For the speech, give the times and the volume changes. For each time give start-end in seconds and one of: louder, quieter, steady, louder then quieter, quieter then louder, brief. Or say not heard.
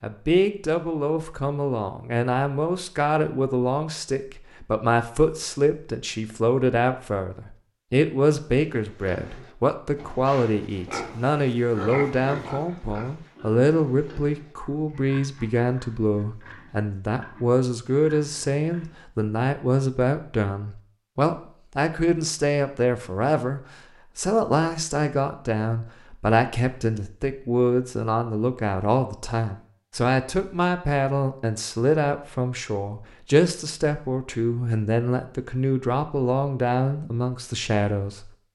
0.0-38.3 steady.